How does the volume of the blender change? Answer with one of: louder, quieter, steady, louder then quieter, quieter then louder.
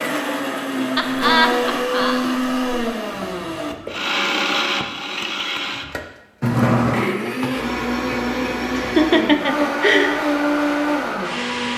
steady.